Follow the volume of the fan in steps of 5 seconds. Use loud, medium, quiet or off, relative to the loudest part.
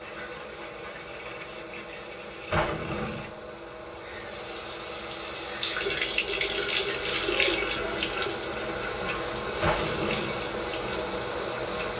medium, loud, loud.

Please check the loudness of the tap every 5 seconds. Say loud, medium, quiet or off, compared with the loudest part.
quiet, loud, medium.